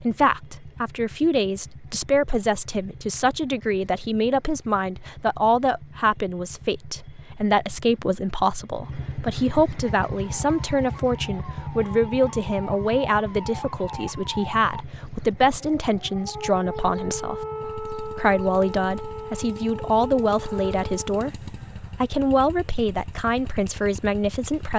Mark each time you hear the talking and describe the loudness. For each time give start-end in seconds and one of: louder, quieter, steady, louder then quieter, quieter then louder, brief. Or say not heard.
0.0-24.7 steady.